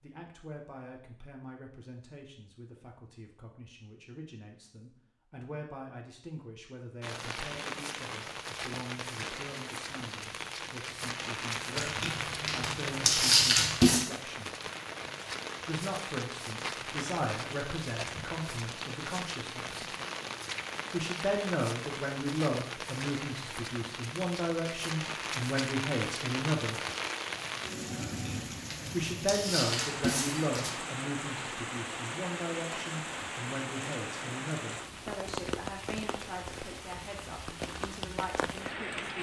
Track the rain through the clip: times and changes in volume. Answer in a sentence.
You can hear the rain from 7.0 to 39.1 s, at a steady volume.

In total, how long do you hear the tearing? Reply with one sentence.
The tearing can be heard for 5 seconds in total.